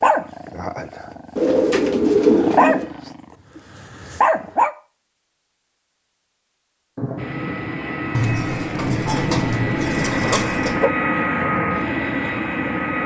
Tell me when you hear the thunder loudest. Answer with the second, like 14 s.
9 s.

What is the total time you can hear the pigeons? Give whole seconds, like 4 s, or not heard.
4 s.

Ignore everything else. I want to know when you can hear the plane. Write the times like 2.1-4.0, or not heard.
7.2-13.0.